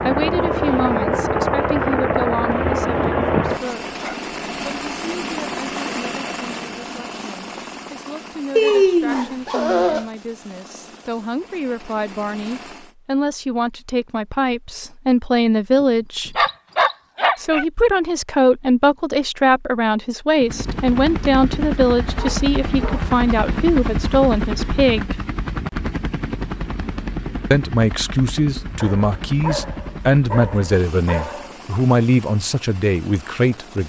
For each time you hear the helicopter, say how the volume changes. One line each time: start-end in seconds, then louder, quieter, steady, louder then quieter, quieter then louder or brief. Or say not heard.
0.0-12.9 quieter
20.4-33.8 quieter.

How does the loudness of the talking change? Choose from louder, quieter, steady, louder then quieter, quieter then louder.
louder.